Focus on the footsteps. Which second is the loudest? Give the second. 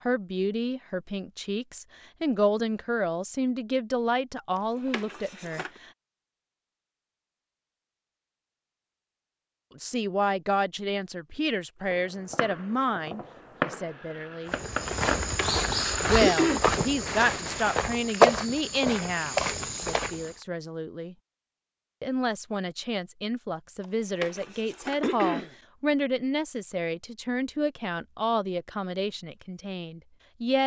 18 s.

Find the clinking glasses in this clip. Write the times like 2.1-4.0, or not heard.
not heard.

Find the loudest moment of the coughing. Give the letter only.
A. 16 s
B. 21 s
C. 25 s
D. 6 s
A.